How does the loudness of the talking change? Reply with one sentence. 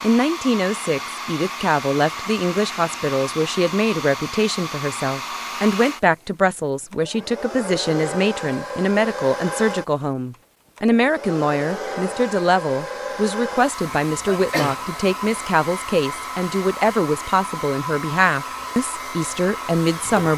The loudness of the talking stays about the same.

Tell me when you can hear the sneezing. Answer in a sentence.
The sneezing can be heard from 13.8 to 14.8 s.